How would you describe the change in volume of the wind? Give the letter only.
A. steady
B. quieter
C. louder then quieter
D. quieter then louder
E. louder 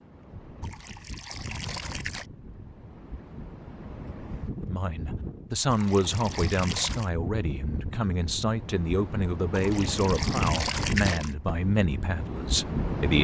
E.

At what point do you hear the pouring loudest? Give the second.
11 s.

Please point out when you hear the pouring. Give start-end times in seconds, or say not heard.
0.6-2.2, 5.7-7.1, 9.5-11.3.